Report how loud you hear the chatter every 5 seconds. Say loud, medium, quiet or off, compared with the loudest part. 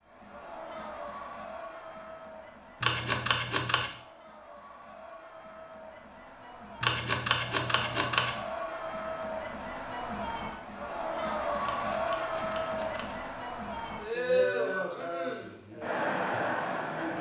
quiet, medium, loud, loud.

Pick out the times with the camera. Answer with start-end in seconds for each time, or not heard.
2.8-3.9, 6.8-8.3, 11.6-13.2.